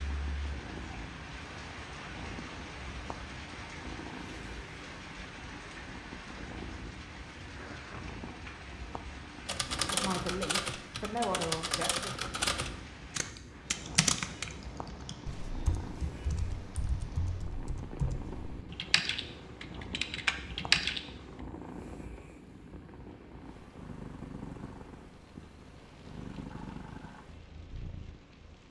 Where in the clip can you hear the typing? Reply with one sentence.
You can hear the typing from 9.4 to 21.4 s.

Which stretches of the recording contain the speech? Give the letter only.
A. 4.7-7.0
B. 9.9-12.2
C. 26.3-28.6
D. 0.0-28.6
B.